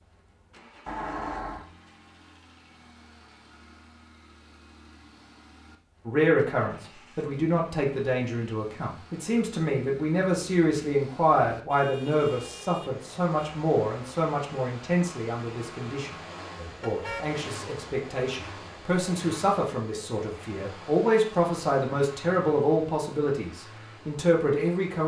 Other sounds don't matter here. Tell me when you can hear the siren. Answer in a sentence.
The siren can't be heard in this clip.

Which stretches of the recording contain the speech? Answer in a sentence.
You can hear the speech from 6.0 to 25.0 s.